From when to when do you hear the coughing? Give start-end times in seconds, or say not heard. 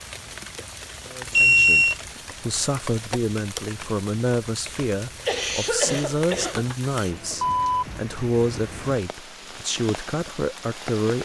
5.0-6.7.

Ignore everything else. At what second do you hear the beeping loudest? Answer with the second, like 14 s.
2 s.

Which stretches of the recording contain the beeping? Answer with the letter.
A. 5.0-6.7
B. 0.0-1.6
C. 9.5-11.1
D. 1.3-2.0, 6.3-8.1
D.